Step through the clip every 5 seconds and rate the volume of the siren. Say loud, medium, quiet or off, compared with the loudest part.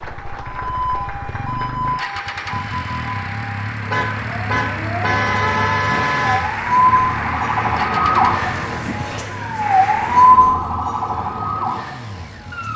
medium, loud, loud.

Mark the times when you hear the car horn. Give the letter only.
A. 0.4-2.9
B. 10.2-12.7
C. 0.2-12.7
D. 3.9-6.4
D.